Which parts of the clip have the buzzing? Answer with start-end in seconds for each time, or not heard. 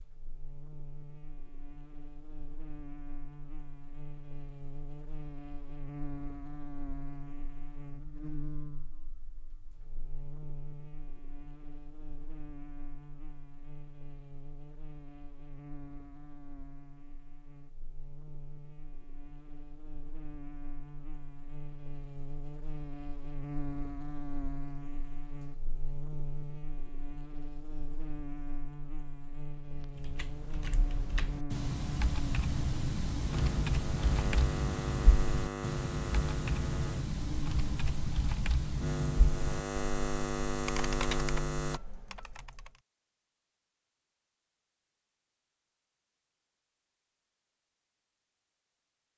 0.0-41.8.